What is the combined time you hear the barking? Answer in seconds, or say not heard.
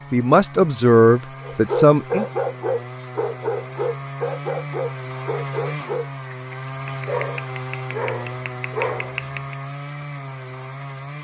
8 s.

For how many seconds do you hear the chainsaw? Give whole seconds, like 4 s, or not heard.
11 s.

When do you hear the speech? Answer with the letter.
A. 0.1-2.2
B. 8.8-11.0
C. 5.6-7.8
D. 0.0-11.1
A.